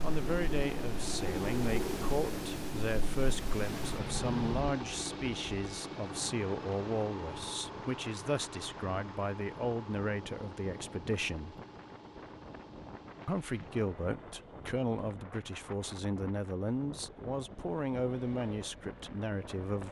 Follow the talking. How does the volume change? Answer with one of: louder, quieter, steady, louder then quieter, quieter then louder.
steady.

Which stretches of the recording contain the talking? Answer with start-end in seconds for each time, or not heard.
0.0-11.6, 13.2-19.8.